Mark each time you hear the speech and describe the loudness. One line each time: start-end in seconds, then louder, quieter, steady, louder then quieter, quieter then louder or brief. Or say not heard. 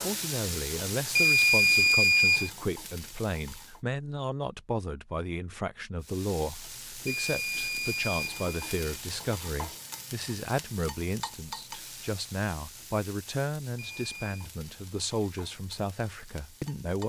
0.0-17.0 steady.